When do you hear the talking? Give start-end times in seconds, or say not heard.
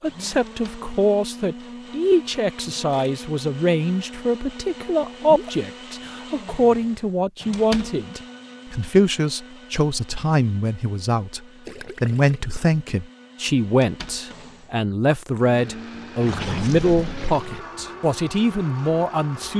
0.0-11.4, 12.0-19.5.